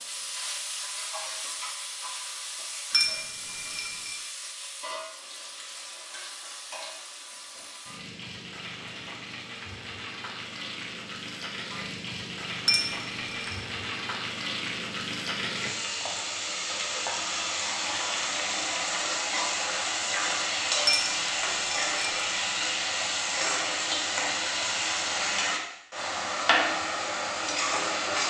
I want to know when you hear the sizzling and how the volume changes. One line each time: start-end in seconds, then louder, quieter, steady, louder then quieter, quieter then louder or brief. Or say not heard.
0.0-28.2 louder.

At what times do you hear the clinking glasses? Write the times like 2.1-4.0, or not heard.
2.9-4.2, 12.7-13.6, 20.9-22.4.